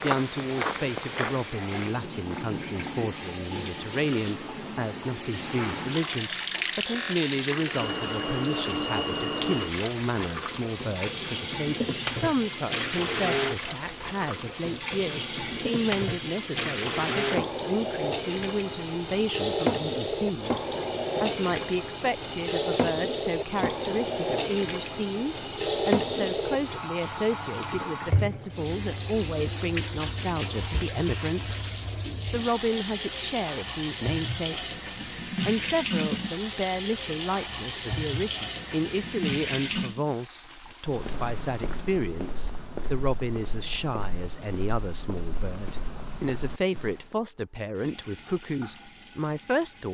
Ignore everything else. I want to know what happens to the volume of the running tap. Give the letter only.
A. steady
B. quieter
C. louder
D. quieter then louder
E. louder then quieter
B.